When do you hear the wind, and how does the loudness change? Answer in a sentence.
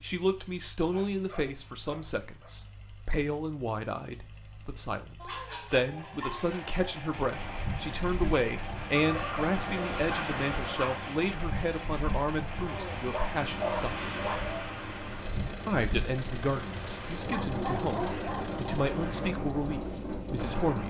You can hear the wind from 7.3 to 20.8 s, at a steady volume.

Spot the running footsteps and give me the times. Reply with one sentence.
The running footsteps can't be heard in this clip.